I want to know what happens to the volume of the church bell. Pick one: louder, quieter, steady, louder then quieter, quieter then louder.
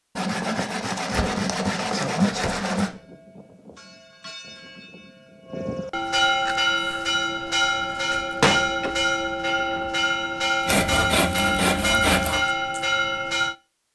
louder.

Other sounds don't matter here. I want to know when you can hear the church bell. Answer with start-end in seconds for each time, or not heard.
2.8-13.6.